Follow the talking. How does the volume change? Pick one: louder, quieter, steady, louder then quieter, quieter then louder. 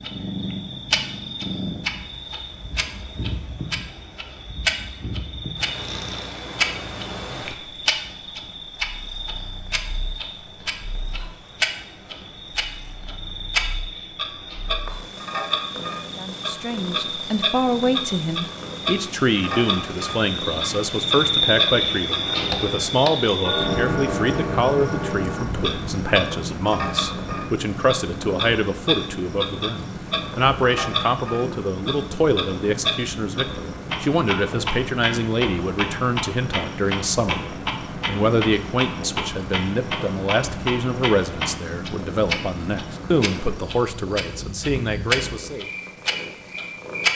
steady.